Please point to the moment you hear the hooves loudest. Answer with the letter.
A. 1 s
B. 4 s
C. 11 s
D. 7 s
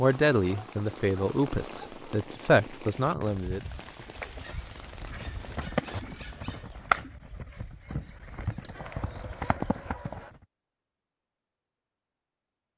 D.